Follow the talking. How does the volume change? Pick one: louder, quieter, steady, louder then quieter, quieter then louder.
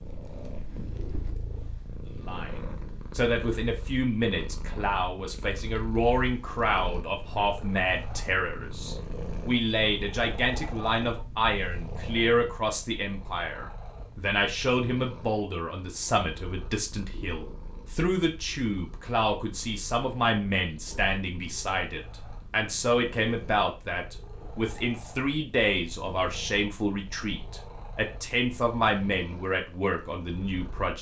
steady.